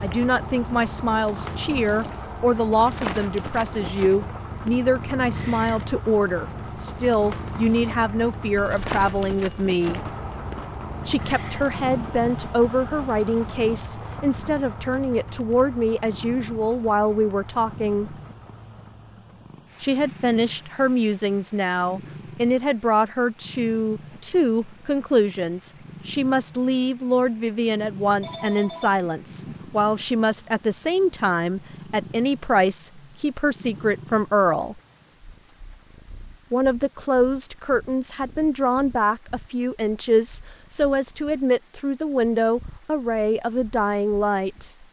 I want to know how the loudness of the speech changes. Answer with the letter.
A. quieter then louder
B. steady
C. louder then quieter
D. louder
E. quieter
B.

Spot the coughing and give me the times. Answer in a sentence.
The coughing can't be heard in this clip.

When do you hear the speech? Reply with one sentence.
You can hear the speech from 0.0 to 10.0 s, from 11.1 to 18.1 s, from 19.8 to 34.8 s and from 36.5 to 44.8 s.